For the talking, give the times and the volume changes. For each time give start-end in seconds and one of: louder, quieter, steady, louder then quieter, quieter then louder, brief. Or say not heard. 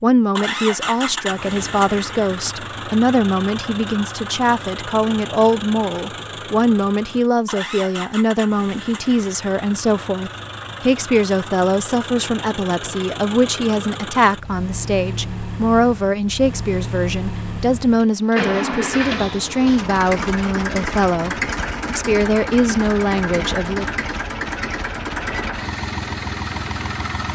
0.0-23.9 steady.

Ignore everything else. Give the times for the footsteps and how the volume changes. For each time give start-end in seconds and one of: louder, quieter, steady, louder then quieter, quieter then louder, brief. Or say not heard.
not heard.